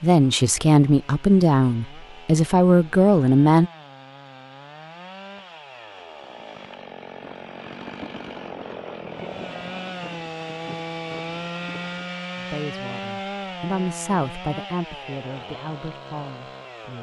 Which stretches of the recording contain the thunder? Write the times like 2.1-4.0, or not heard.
7.2-12.2.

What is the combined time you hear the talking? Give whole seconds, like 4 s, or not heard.
8 s.